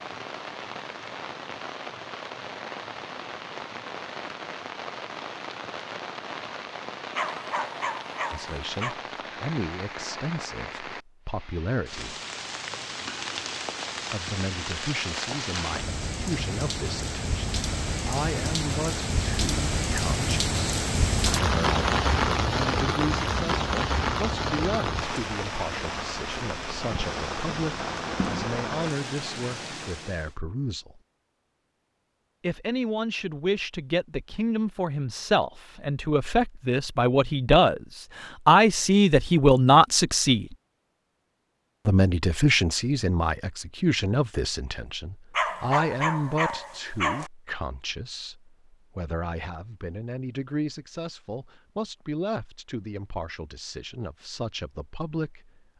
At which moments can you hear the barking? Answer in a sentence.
The barking can be heard from 7.2 to 8.9 s and from 45.3 to 47.3 s.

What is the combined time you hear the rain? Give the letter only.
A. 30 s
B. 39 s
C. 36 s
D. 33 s
A.